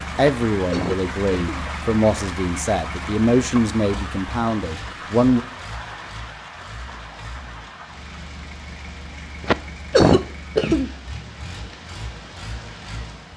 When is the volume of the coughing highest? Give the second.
10 s.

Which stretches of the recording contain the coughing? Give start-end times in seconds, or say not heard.
0.2-1.6, 9.4-10.9.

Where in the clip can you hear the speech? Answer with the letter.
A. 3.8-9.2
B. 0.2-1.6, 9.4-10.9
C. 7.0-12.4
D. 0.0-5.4
D.